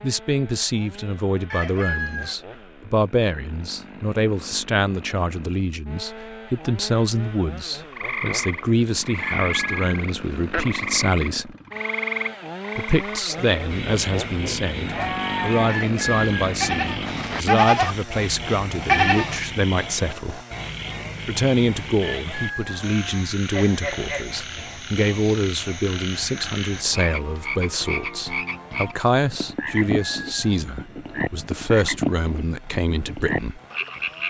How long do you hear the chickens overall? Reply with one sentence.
The chickens can be heard for 4 seconds in total.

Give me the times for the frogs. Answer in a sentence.
The frogs can be heard from 7.9 to 34.2 s.